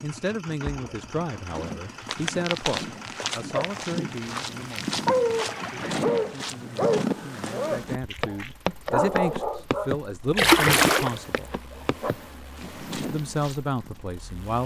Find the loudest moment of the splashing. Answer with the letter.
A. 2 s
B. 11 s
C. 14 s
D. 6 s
B.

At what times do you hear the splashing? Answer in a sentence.
You can hear the splashing from 0.6 to 2.2 s, from 5.2 to 6.5 s and from 10.3 to 11.4 s.